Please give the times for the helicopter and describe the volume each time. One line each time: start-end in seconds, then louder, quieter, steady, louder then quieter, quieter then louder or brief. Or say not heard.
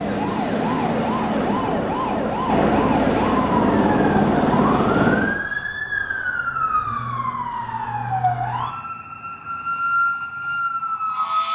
0.0-5.4 louder.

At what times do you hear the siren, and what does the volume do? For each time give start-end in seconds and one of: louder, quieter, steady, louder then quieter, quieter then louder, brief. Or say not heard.
0.0-11.4 steady.